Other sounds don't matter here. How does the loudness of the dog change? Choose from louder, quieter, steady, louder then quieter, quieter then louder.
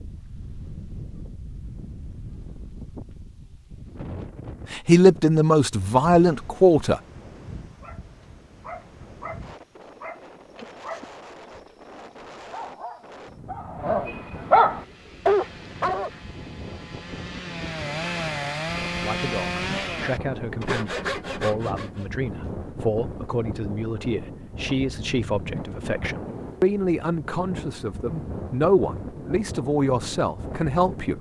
louder.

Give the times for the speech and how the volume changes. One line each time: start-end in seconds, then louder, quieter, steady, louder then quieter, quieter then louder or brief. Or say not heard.
4.7-7.0 brief
18.8-31.1 louder.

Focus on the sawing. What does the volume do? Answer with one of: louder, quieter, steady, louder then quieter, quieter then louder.
louder.